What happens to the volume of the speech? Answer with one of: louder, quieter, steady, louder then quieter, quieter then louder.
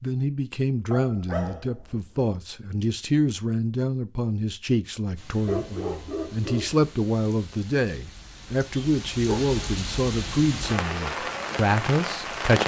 steady.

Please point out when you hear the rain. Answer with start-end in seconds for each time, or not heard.
5.2-12.6.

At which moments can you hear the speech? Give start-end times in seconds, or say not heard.
0.0-12.6.